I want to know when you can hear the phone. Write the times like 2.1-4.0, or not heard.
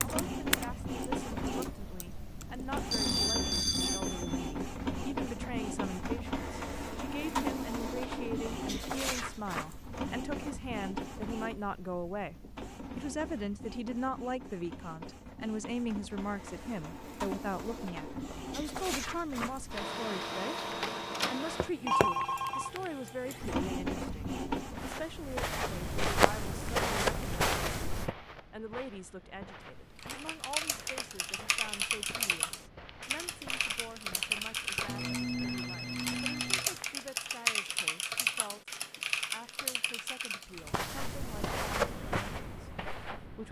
2.9-4.5, 21.8-22.7, 34.9-36.8.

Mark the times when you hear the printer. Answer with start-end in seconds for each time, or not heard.
0.0-25.1.